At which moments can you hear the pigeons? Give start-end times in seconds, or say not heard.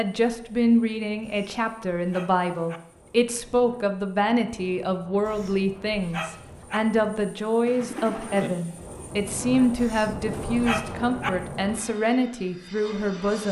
7.7-8.5.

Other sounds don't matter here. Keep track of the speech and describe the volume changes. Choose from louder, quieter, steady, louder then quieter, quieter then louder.
steady.